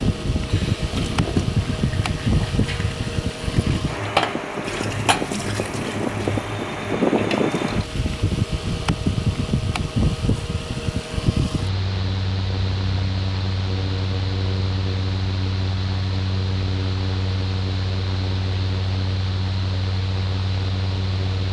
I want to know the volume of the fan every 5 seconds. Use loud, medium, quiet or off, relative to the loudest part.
loud, loud, loud, medium, medium.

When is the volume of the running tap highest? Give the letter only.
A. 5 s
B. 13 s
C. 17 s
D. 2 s
A.